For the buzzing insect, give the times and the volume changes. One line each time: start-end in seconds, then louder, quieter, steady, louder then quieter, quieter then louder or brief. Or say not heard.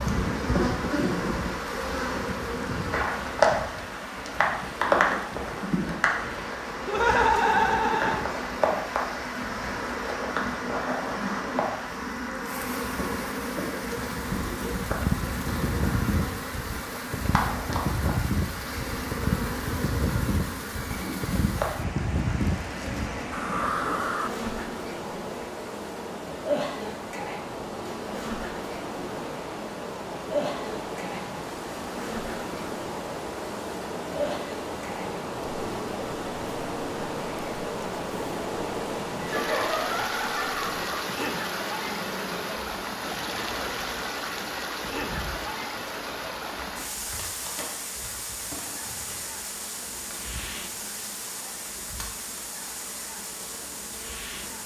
0.0-54.6 quieter.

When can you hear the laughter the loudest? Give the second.
7 s.